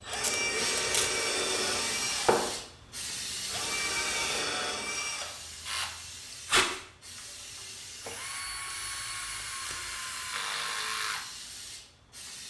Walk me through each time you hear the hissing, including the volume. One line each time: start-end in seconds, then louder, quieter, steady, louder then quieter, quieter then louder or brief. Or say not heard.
0.0-12.4 quieter.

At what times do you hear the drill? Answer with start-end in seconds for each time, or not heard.
0.0-12.3.